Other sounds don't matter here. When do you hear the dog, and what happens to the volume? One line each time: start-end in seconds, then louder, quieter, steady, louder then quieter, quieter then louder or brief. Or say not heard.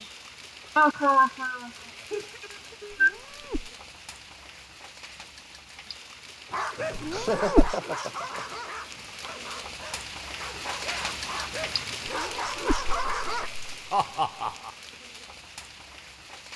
6.5-13.5 quieter then louder.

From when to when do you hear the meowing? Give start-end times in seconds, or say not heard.
2.9-3.7, 7.0-7.8, 12.1-12.8.